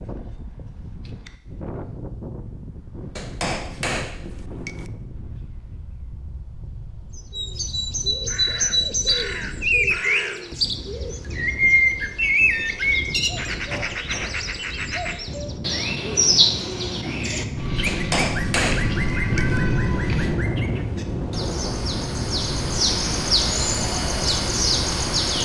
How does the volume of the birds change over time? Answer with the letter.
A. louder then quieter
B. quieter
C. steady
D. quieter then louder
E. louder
D.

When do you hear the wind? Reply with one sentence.
The wind can be heard from 0.0 to 25.4 s.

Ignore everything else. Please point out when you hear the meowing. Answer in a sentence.
The meowing can be heard from 17.6 to 20.3 s.